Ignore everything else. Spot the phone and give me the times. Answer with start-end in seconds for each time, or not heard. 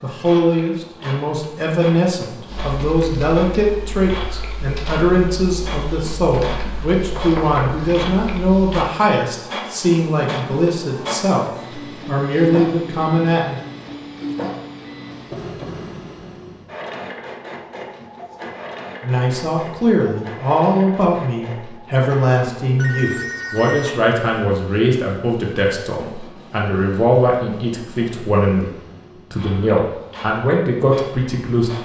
22.8-23.9.